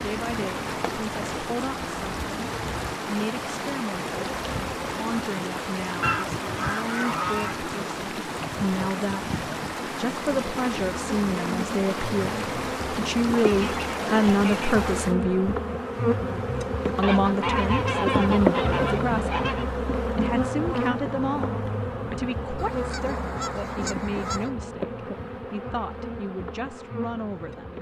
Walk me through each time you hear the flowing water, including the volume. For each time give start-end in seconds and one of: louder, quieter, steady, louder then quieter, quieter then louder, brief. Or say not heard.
0.0-15.2 steady.